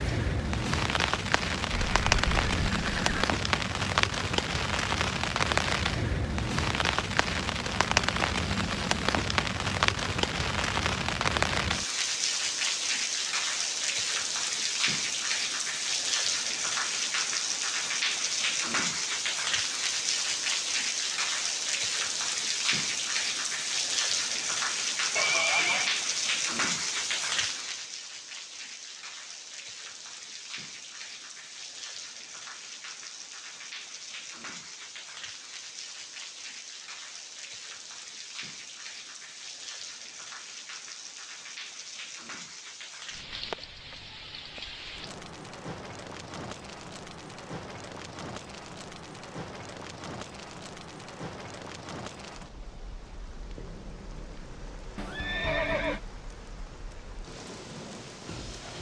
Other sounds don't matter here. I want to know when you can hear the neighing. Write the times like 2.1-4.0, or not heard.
1.7-3.2, 25.1-25.9, 55.0-56.0.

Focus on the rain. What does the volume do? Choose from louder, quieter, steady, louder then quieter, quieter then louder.
quieter.